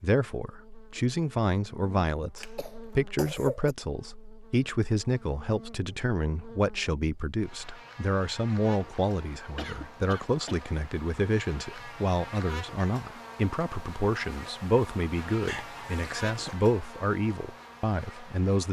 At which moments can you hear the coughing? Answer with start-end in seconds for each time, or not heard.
2.4-3.8, 9.5-10.6, 15.4-16.6.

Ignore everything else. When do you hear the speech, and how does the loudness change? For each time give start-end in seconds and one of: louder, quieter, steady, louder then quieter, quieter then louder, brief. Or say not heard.
0.0-18.6 steady.